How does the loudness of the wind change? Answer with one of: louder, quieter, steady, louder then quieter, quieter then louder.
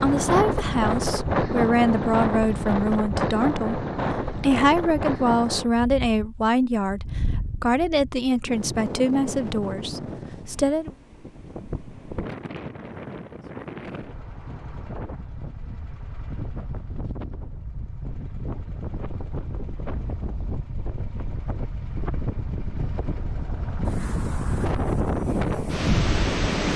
quieter then louder.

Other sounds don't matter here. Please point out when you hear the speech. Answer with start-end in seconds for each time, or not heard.
0.0-10.9.